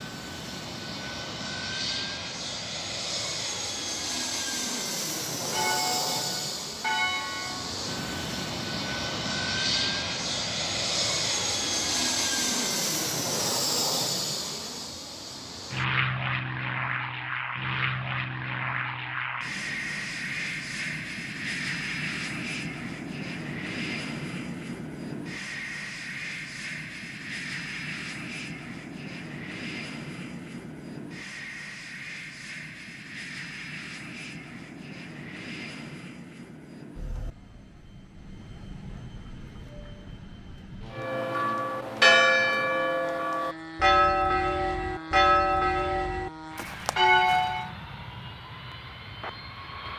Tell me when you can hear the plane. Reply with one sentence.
You can hear the plane from 0.0 to 49.9 s.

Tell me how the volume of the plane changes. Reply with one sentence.
The volume of the plane goes down.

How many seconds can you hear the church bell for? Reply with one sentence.
You can hear the church bell for 9 seconds altogether.